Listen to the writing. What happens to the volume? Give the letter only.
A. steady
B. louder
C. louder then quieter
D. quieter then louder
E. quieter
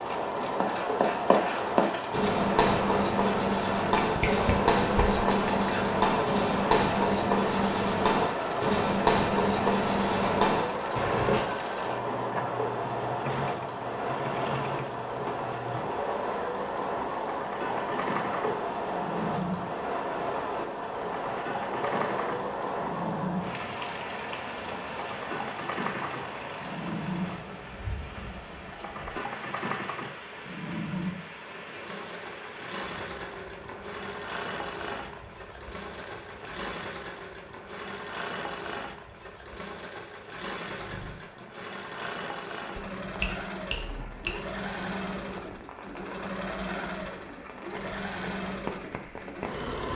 A.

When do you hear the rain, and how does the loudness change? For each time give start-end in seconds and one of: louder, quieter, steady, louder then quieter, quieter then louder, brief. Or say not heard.
0.0-49.9 quieter.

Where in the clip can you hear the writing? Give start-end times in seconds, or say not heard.
0.6-11.4.